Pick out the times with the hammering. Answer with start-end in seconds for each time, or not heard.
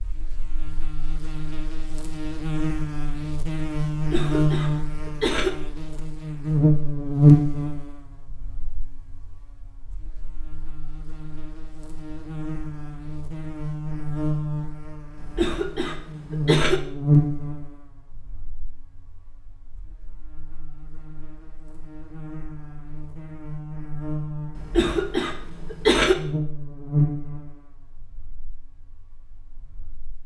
not heard.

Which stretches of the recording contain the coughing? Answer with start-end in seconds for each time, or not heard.
3.9-5.5, 15.2-16.8, 24.6-26.1.